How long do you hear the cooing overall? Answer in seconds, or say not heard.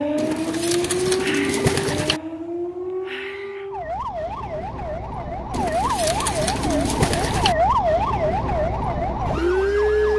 4 s.